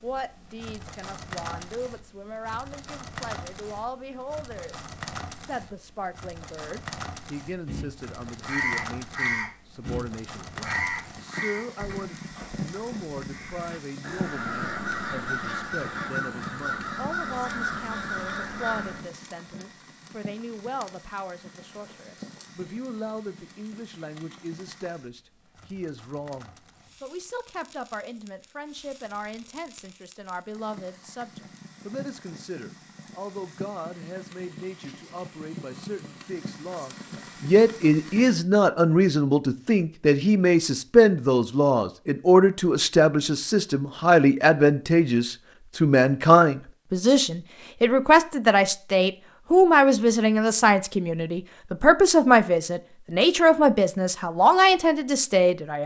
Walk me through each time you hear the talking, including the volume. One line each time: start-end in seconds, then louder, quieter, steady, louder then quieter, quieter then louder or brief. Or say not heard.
0.0-55.8 louder.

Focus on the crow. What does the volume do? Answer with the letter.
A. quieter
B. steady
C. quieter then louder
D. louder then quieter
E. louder
C.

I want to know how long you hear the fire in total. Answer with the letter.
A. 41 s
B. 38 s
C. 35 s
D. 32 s
B.